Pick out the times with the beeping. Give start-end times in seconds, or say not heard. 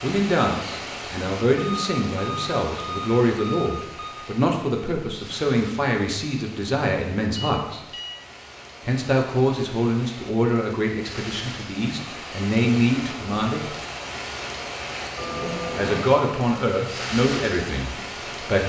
1.6-4.2, 7.3-8.2, 15.2-16.1.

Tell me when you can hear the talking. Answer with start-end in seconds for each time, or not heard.
0.0-7.8, 8.8-13.7, 15.4-18.6.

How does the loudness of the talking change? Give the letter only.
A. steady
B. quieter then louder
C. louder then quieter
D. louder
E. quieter
A.